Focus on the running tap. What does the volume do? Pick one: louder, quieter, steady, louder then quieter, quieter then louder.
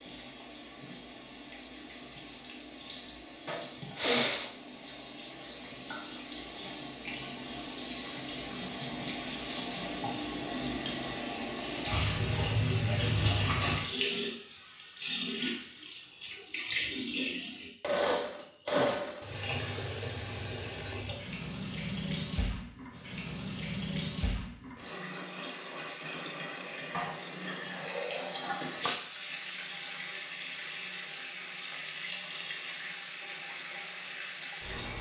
louder then quieter.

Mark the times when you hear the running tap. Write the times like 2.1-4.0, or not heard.
0.0-34.9.